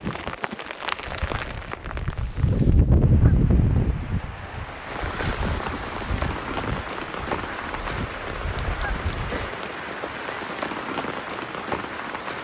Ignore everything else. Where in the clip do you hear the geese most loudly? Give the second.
3 s.